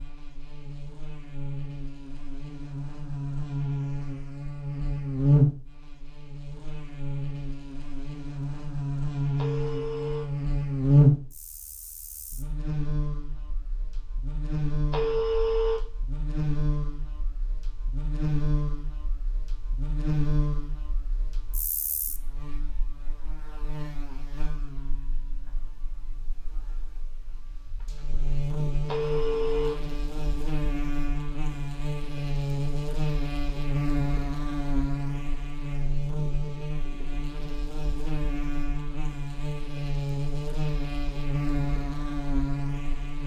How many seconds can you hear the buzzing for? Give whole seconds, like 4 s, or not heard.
43 s.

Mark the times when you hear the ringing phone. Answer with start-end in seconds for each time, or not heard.
9.3-10.2, 14.9-15.8, 28.9-29.8.